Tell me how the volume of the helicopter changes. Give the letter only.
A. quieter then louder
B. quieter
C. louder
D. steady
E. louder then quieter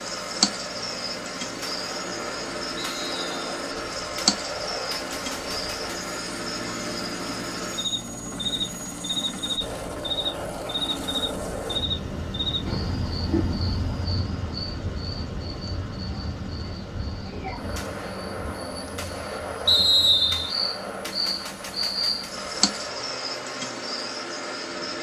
E.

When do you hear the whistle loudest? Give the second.
20 s.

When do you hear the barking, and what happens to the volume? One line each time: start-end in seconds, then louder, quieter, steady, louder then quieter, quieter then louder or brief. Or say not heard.
not heard.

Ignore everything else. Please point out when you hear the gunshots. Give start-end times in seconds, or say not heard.
1.6-6.0, 17.8-22.4.